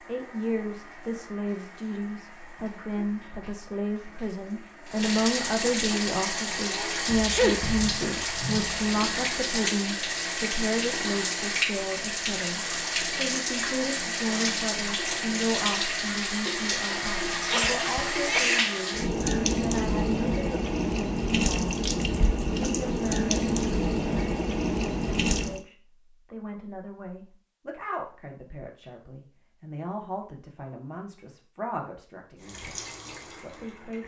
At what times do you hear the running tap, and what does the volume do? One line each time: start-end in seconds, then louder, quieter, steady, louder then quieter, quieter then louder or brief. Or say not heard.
0.0-25.6 louder
32.4-34.0 brief.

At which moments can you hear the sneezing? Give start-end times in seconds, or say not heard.
6.5-7.6, 17.4-18.7.